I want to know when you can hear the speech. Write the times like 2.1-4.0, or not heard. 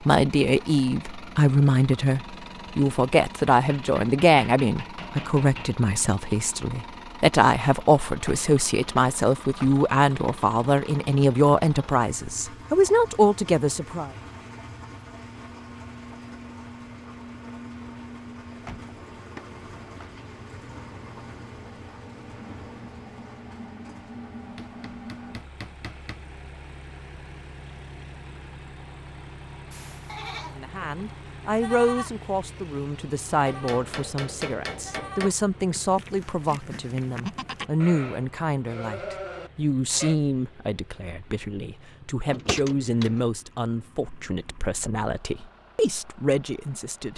0.1-14.1, 30.6-47.1.